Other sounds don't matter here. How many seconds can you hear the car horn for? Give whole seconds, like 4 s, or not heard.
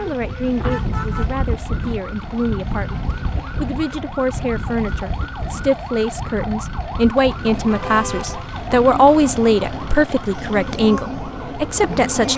2 s.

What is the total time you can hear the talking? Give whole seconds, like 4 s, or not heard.
12 s.